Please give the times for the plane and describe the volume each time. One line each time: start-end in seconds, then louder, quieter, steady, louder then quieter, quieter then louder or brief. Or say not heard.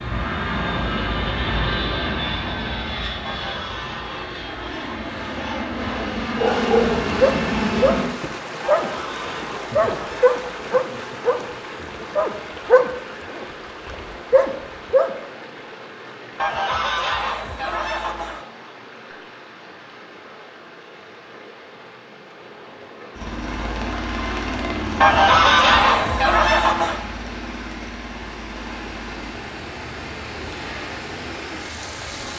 0.0-8.1 quieter then louder
23.1-32.3 quieter.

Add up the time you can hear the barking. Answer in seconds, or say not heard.
8 s.